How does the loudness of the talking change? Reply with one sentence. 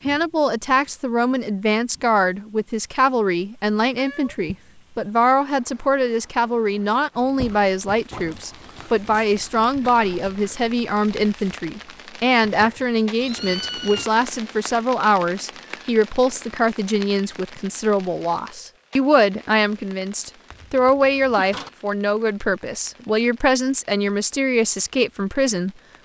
The volume of the talking stays about the same.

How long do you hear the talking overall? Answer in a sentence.
The talking can be heard for 26 seconds in total.